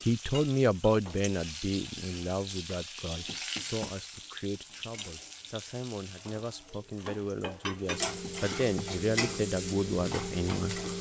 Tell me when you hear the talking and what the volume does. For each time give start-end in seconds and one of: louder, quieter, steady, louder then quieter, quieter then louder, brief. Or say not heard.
0.1-10.8 quieter then louder.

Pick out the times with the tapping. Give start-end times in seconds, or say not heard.
3.2-4.0, 8.2-8.9.